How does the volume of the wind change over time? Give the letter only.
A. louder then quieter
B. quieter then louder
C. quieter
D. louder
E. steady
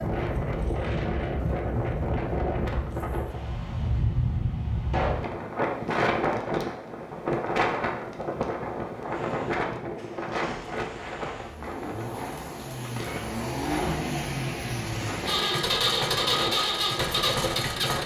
C.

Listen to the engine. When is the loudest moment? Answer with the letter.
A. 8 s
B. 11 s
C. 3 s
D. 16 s
D.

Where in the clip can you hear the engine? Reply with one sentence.
The engine can be heard from 9.1 to 18.0 s.